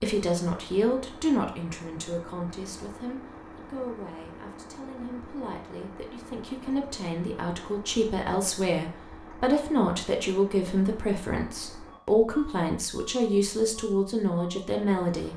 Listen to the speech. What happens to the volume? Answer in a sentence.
The loudness of the speech goes down, then up.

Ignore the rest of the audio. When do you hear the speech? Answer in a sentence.
The speech can be heard from 0.0 to 15.3 s.